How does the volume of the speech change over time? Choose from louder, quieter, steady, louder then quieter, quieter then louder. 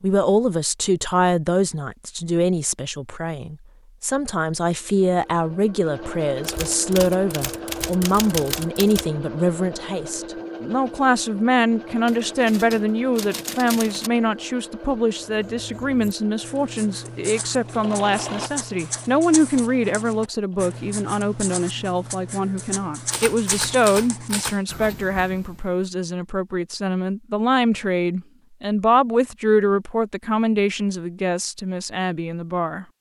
steady.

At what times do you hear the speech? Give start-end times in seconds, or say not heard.
0.0-32.9.